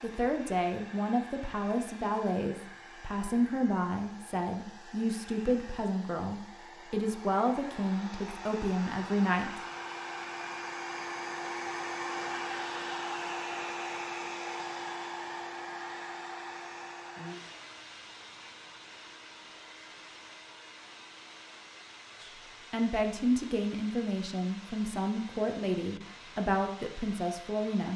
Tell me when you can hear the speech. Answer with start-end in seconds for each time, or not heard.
0.0-9.6, 22.2-27.9.